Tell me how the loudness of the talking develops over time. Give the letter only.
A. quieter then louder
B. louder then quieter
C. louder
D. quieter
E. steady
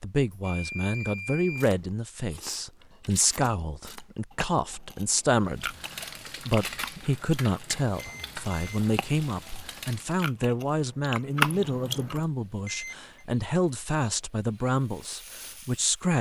E.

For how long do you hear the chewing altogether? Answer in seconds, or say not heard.
11 s.